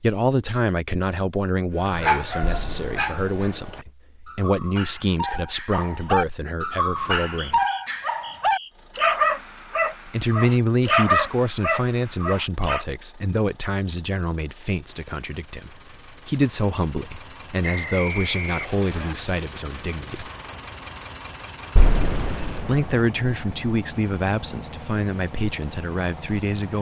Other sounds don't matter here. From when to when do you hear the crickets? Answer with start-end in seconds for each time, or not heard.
not heard.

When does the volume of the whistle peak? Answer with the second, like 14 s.
18 s.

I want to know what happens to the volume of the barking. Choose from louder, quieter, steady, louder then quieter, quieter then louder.
louder.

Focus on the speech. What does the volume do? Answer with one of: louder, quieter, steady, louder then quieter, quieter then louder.
steady.